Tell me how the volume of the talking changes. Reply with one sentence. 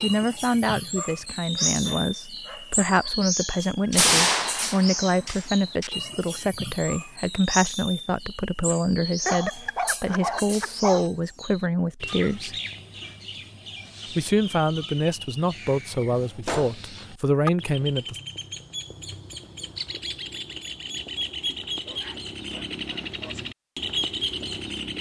The loudness of the talking stays about the same.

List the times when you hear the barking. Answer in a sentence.
The barking can be heard from 0.9 to 3.1 s, from 9.2 to 11.1 s and from 21.9 to 23.4 s.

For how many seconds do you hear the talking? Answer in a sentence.
The talking can be heard for 17 seconds in total.